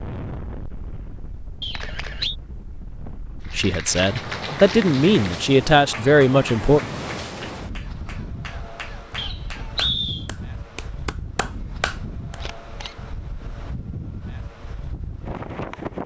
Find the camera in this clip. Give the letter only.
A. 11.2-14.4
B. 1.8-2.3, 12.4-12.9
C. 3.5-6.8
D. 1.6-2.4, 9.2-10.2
B.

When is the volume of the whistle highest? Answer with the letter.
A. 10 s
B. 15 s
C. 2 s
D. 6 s
A.